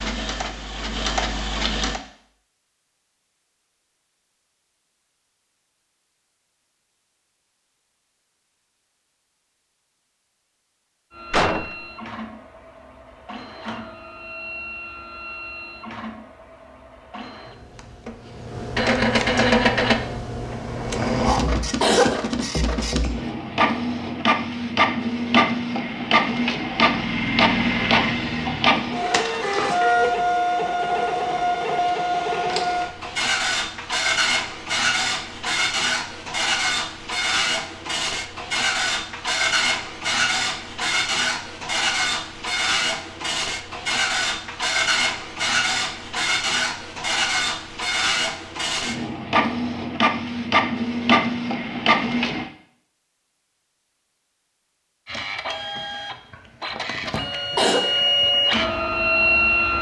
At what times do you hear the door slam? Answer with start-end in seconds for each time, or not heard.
11.3-11.8.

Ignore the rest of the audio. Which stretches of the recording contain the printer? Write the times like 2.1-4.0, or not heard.
0.0-2.0, 11.1-52.5, 55.0-59.7.